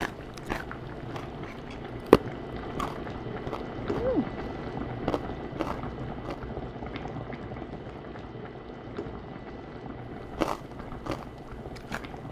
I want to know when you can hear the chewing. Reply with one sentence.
The chewing can be heard from 0.0 to 6.5 s and from 10.2 to 12.2 s.